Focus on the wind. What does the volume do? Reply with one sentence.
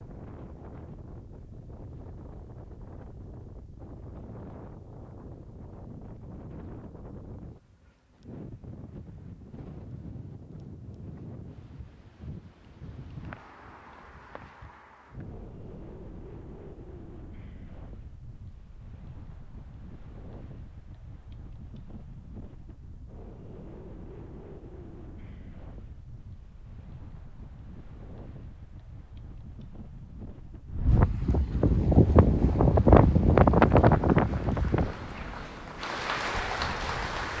The volume of the wind goes up.